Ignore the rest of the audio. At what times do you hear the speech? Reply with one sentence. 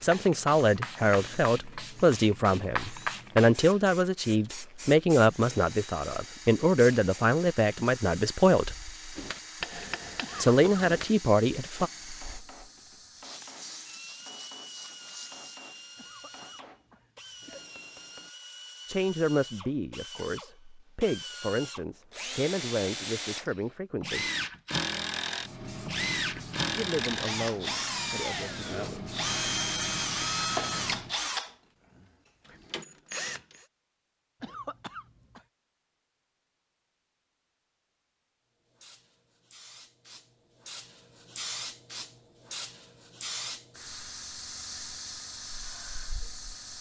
The speech can be heard from 0.0 to 8.8 s, from 10.4 to 11.9 s, from 18.9 to 24.3 s and from 26.7 to 29.1 s.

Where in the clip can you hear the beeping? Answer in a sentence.
You can't hear the beeping here.